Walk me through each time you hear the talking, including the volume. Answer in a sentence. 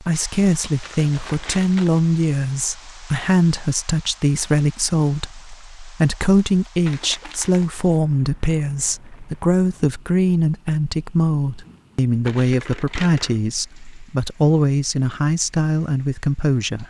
The talking can be heard from 0.0 to 16.8 s, at a steady volume.